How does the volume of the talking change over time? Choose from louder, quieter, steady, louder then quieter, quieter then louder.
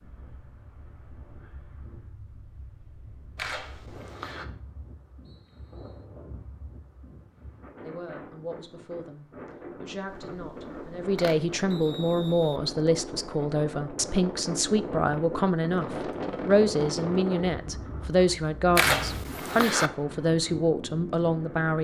louder.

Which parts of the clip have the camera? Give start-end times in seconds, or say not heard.
3.4-4.5, 10.3-11.6, 18.8-19.9.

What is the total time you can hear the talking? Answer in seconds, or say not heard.
14 s.